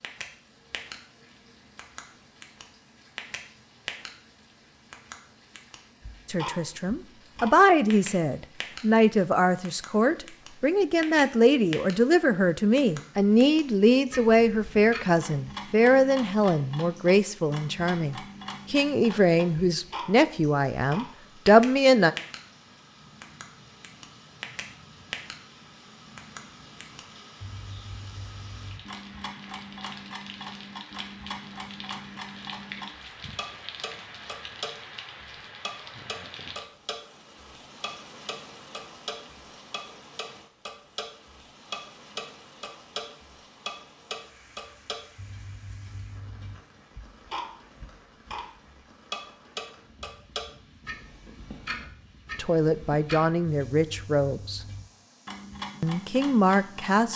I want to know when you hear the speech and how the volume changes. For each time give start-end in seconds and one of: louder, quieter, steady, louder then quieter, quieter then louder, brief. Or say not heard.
6.2-22.1 steady
52.4-54.6 brief
55.8-57.1 brief.